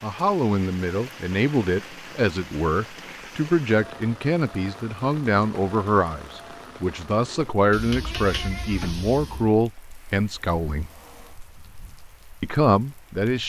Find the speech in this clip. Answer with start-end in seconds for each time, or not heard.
0.0-10.9, 12.4-13.4.